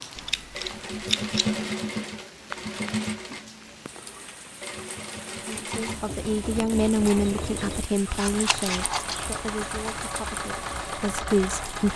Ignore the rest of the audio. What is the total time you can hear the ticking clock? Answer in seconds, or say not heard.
not heard.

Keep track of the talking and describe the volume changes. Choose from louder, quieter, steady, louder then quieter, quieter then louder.
quieter then louder.